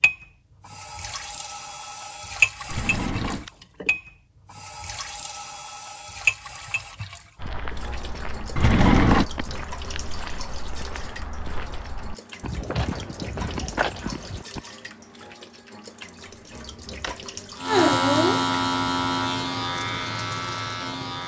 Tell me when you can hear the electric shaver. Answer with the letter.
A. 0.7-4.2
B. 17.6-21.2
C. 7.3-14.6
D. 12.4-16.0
B.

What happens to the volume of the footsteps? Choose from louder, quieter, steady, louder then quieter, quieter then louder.
louder.